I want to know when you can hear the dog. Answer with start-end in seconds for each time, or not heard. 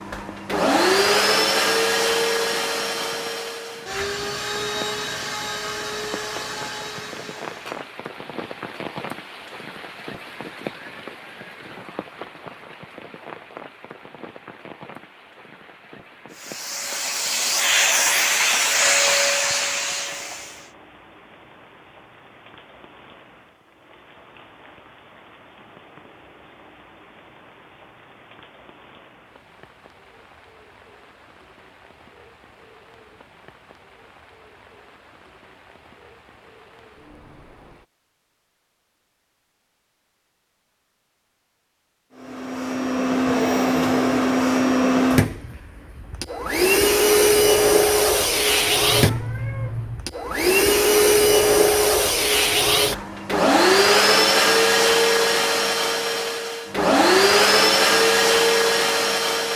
not heard.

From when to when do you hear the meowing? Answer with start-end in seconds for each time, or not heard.
48.9-50.0.